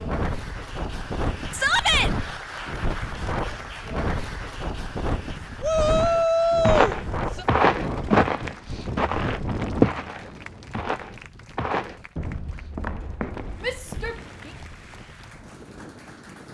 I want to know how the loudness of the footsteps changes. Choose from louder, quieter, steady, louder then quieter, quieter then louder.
quieter.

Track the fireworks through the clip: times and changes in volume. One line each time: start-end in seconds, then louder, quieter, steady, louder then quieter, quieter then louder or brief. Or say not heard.
not heard.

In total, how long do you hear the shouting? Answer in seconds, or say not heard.
3 s.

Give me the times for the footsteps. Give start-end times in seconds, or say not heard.
5.8-14.2.